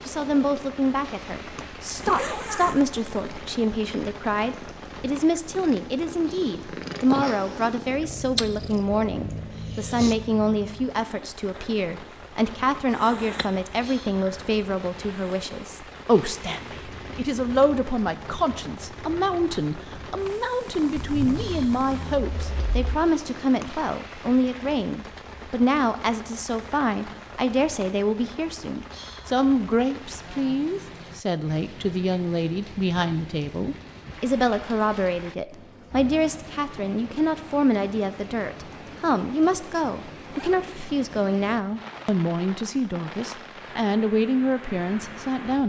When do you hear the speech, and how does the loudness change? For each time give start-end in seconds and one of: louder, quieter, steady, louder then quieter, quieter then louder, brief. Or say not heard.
0.1-45.6 steady.